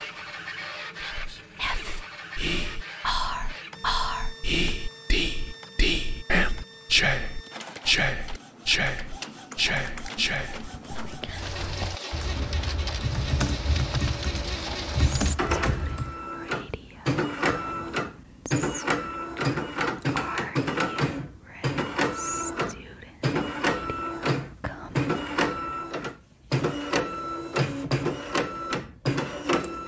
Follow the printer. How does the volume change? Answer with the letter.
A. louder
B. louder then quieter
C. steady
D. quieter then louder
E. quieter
A.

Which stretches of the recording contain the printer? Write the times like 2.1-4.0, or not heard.
0.0-29.8.